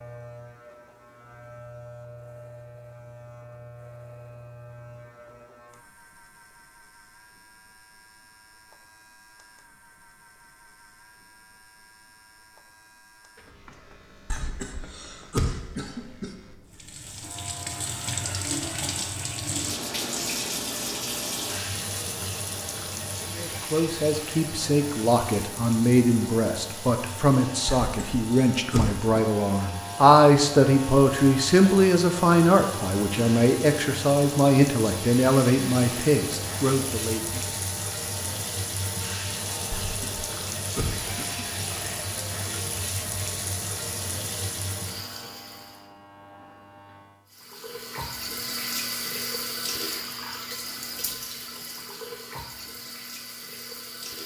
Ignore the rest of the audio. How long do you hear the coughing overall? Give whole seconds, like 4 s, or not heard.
5 s.